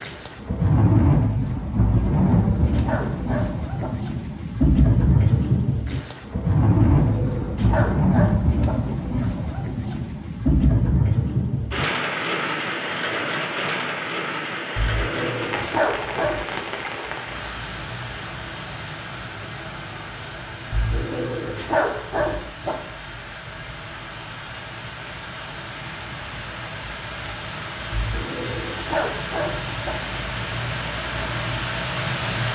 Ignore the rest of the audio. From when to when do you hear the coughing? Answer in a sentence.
The coughing can't be heard in this clip.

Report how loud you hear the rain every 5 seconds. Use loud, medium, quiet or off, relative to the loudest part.
loud, loud, loud, medium, quiet, medium, medium.